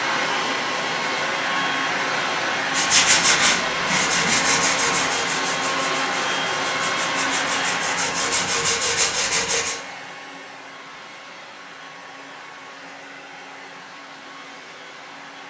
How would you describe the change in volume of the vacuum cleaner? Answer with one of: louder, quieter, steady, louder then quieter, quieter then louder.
quieter.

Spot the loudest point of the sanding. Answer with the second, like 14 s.
3 s.